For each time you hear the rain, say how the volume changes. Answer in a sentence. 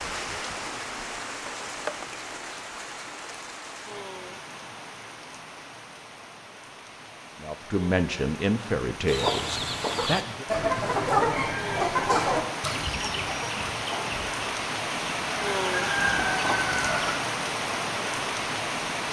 You can hear the rain from 0.0 to 19.0 s, getting quieter then louder.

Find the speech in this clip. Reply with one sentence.
The speech can be heard from 7.4 to 10.4 s.